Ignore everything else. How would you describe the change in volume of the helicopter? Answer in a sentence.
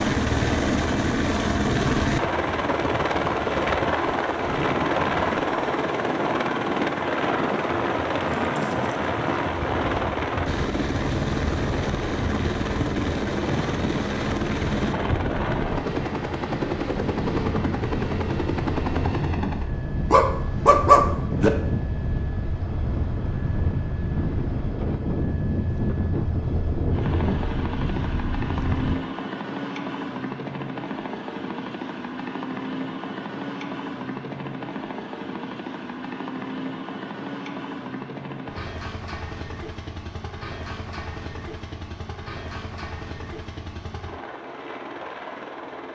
The loudness of the helicopter goes down.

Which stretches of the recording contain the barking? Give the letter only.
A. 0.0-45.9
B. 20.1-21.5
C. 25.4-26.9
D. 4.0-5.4
B.